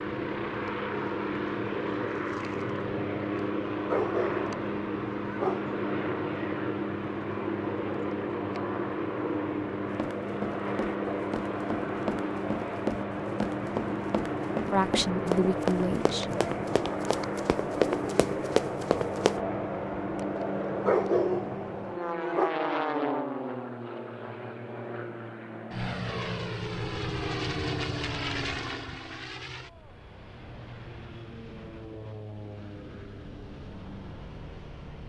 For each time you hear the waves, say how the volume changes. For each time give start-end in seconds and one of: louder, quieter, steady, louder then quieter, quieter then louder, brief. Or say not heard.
not heard.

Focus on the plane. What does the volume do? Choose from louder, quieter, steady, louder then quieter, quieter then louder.
quieter.